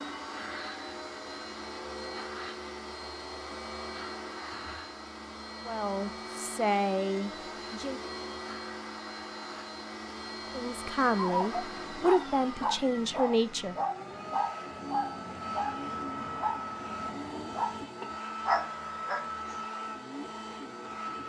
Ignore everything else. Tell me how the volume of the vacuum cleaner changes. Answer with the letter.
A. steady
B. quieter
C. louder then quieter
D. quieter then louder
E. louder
A.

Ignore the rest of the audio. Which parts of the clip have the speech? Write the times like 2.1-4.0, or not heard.
5.7-8.0, 10.5-13.8.